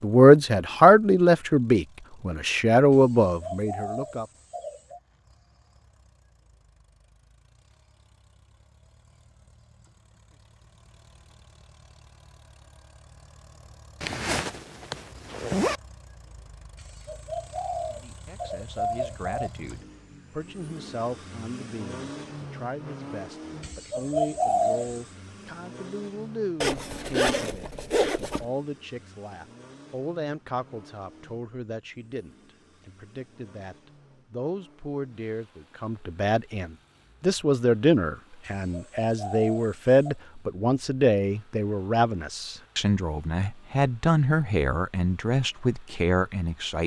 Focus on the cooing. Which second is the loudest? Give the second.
25 s.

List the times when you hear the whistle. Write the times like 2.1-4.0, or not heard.
not heard.